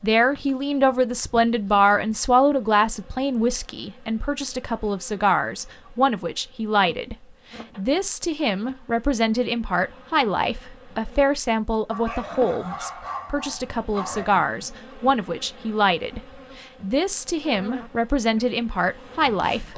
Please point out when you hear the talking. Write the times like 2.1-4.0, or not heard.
0.0-19.7.